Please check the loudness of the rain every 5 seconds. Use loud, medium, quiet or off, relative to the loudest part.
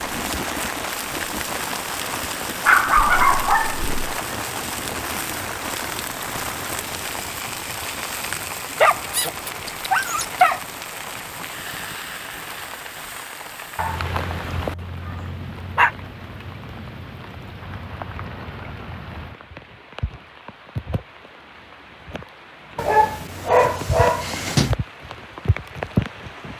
loud, loud, medium, medium, medium, loud.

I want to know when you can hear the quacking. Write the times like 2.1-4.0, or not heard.
not heard.